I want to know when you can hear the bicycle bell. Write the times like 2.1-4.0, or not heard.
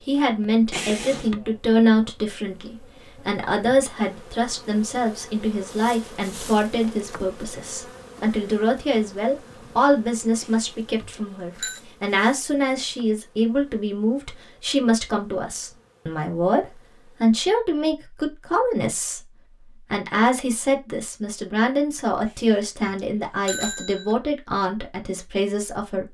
0.7-1.4, 10.4-11.8, 22.2-24.1.